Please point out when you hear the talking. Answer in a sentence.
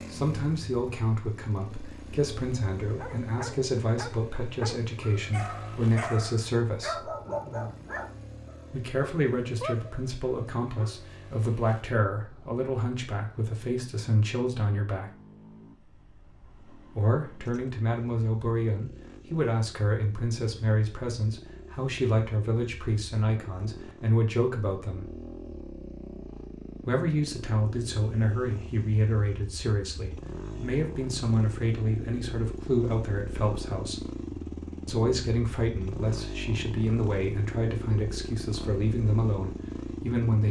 You can hear the talking from 0.1 to 7.1 s, from 8.7 to 15.1 s, from 16.9 to 25.1 s, from 26.9 to 34.0 s and from 34.9 to 40.4 s.